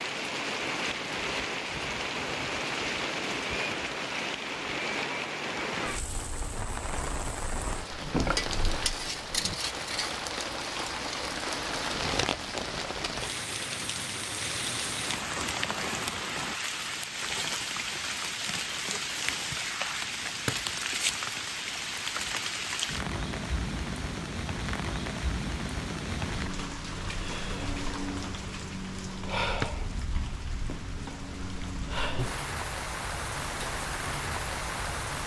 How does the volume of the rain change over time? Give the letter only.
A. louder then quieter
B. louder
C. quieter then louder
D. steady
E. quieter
D.